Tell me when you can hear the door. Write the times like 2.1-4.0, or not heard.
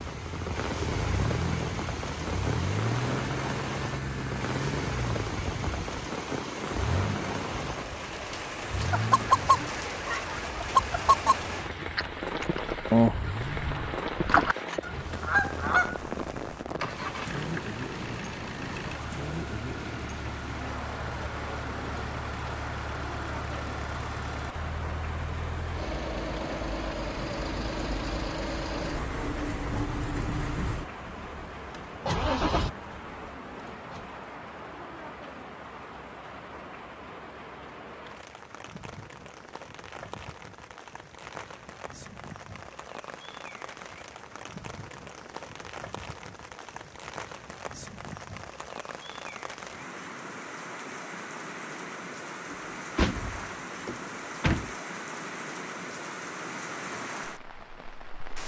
52.5-54.7.